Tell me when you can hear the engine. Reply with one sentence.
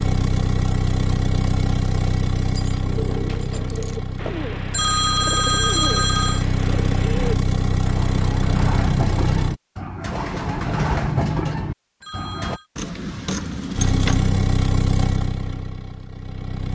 You can hear the engine from 0.0 to 9.6 s and from 13.7 to 16.7 s.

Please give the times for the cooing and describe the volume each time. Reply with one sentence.
The cooing can be heard from 2.9 to 12.6 s, getting louder.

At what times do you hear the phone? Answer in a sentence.
The phone can be heard from 4.7 to 6.5 s and from 12.0 to 12.7 s.